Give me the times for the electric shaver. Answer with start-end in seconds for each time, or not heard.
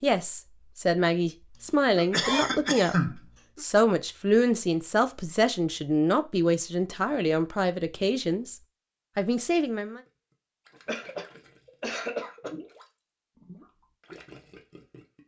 not heard.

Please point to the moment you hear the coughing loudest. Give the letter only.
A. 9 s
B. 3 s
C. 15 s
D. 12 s
B.